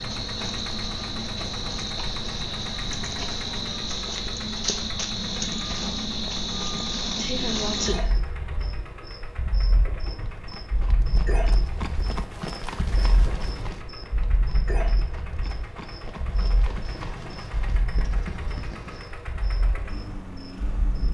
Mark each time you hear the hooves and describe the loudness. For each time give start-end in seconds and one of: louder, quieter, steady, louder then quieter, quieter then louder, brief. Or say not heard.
10.2-19.1 quieter then louder.